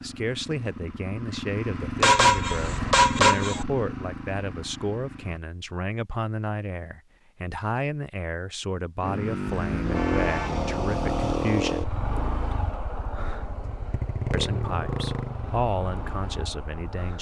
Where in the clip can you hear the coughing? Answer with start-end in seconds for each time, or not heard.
not heard.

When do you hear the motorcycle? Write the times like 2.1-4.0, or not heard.
0.0-5.4, 9.0-17.1.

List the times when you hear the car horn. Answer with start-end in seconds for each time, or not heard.
2.0-3.6, 9.4-11.4.